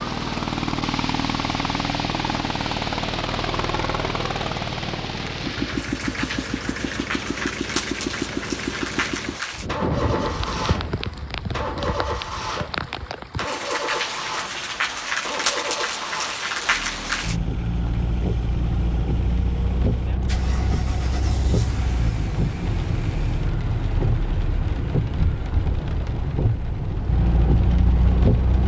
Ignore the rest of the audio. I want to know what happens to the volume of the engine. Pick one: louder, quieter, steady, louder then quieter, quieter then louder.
quieter.